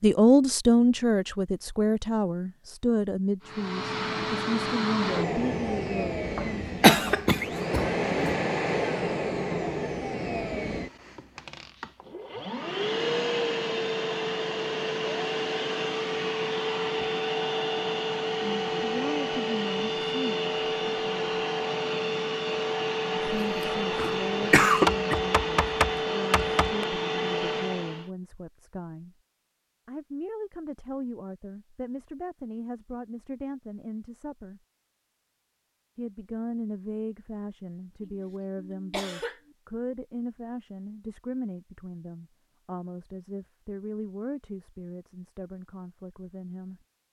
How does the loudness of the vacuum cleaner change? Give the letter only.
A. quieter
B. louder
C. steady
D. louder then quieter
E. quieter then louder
C.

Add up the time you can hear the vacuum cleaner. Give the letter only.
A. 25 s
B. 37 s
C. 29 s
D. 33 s
A.